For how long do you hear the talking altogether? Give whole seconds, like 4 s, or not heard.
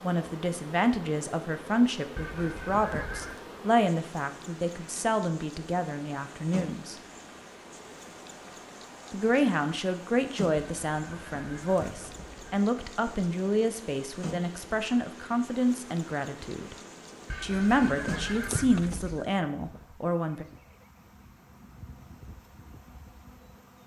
18 s.